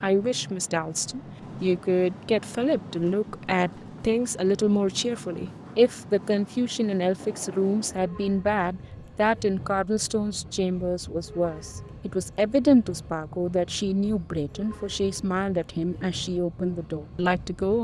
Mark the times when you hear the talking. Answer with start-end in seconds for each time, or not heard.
0.0-17.7.